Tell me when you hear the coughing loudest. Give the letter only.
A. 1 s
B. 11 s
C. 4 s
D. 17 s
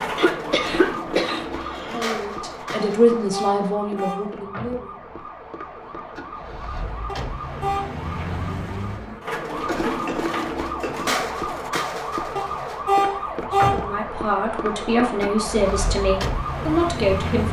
A.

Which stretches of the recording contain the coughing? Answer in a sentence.
The coughing can be heard from 0.1 to 2.2 s and from 9.7 to 11.3 s.